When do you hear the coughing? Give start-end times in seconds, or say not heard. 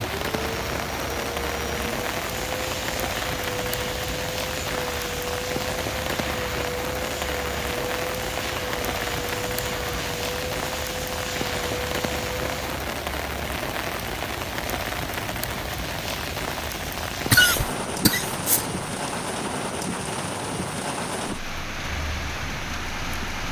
17.3-19.1.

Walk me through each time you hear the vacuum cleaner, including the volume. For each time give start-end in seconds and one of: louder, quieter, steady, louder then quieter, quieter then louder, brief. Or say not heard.
0.0-12.8 steady.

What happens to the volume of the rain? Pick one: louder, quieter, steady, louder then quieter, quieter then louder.
steady.